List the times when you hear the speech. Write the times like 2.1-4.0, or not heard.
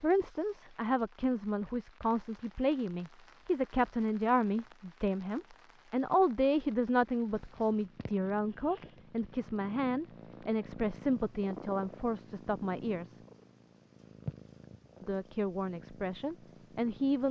0.0-13.2, 15.0-17.2.